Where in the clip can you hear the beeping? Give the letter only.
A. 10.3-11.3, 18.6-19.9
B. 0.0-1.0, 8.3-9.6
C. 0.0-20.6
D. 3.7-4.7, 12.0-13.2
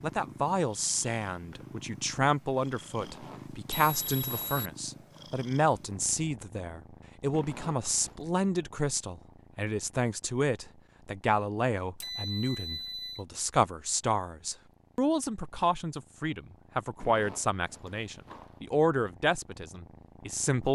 D.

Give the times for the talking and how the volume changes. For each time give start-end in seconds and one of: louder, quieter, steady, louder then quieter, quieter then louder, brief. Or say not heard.
0.0-20.6 steady.